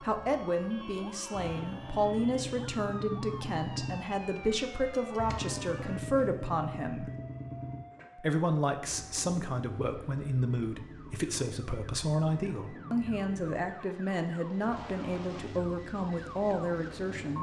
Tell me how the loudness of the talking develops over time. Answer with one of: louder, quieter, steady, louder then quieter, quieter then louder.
steady.